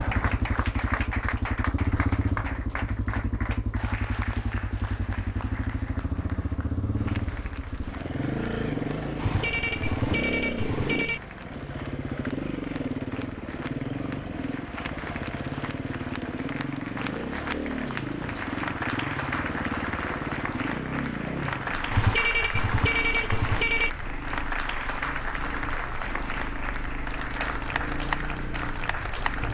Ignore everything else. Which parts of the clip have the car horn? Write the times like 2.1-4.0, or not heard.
9.2-11.2, 21.9-23.9.